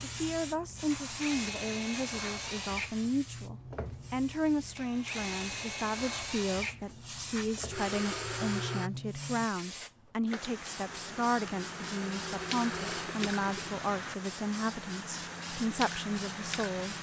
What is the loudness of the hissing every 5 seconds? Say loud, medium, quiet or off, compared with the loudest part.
medium, loud, loud, loud.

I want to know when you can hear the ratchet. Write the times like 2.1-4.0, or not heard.
not heard.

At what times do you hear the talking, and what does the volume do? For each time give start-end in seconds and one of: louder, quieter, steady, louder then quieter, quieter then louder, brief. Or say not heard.
0.0-16.9 steady.